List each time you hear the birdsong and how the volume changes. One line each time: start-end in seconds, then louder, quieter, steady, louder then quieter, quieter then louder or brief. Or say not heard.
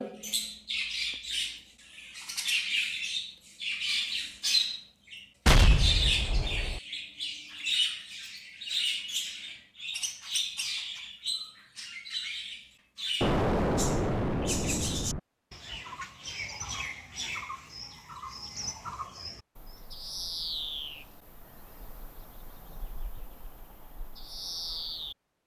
0.0-25.4 quieter.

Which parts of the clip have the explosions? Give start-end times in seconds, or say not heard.
5.5-6.8, 13.2-15.2.